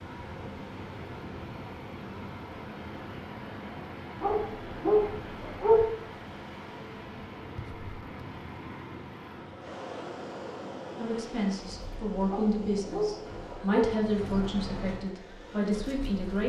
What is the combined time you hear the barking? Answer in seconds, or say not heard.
3 s.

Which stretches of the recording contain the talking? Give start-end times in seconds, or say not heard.
10.9-16.4.